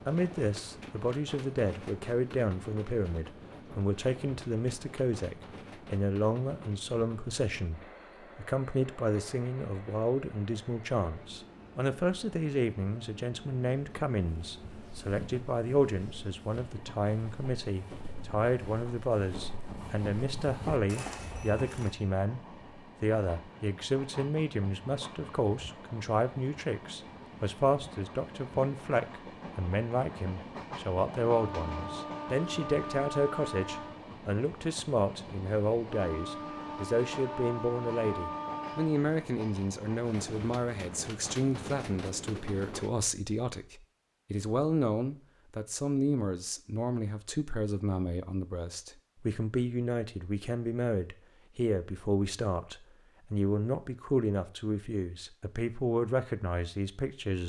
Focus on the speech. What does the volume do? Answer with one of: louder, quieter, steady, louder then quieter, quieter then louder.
steady.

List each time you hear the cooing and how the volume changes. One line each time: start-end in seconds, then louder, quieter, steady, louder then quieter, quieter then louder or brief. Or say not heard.
not heard.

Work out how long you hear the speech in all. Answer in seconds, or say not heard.
57 s.